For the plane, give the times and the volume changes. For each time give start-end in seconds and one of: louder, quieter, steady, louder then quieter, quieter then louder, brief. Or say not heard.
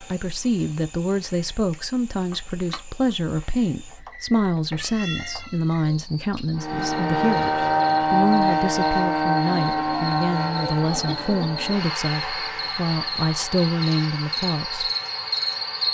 6.5-15.8 quieter.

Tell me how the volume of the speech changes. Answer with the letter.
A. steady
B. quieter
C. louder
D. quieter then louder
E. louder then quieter
A.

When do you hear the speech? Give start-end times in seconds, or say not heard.
0.0-14.9.